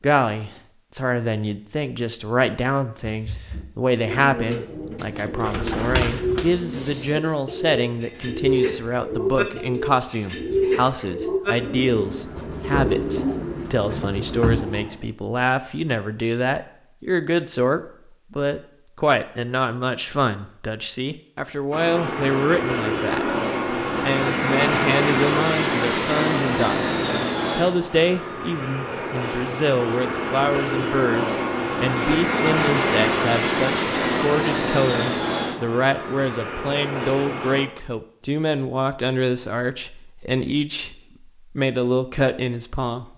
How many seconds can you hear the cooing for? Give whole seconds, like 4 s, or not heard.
12 s.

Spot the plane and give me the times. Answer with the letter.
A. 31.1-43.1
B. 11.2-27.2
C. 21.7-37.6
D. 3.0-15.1
C.